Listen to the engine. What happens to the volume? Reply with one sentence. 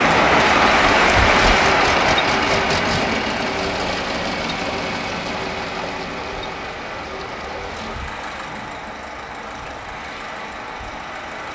The loudness of the engine goes down.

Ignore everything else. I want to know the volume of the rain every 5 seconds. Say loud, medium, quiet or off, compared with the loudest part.
loud, quiet, quiet.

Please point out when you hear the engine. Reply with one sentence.
The engine can be heard from 0.0 to 11.5 s.